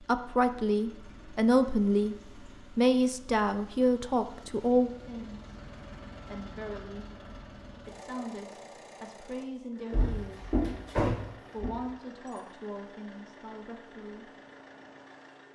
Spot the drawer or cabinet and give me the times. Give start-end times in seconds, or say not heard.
9.9-11.7.